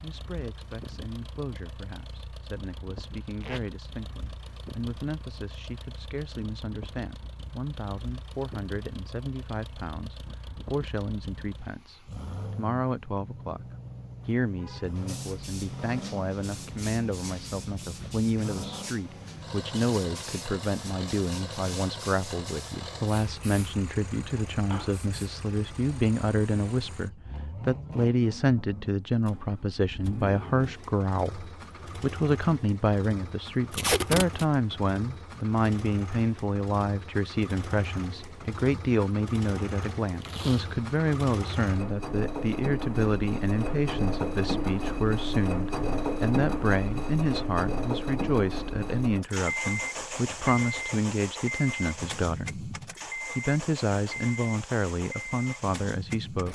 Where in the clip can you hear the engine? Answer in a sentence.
You can hear the engine from 0.0 to 56.4 s.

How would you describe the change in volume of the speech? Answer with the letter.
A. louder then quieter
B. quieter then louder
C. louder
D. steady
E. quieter
C.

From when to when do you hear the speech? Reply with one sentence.
You can hear the speech from 0.0 to 13.7 s and from 14.2 to 56.4 s.